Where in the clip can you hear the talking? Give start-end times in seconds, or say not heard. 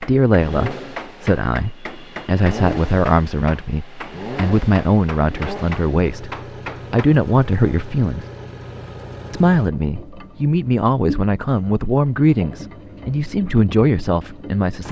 0.0-8.2, 9.3-14.8.